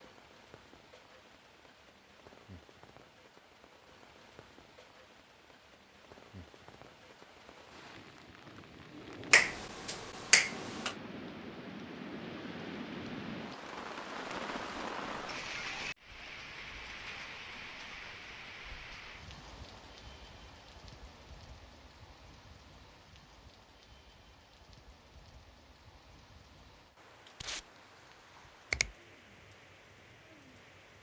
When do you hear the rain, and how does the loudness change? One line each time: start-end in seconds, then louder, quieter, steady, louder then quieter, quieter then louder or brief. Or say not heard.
0.0-30.9 louder then quieter.